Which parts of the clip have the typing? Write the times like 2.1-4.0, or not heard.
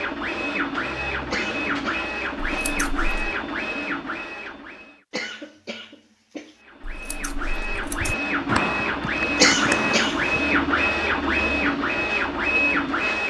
8.0-10.4.